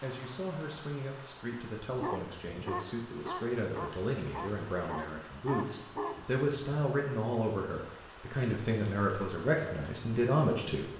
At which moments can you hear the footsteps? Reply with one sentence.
You can't hear the footsteps here.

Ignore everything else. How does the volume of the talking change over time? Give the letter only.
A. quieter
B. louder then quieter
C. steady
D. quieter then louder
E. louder
E.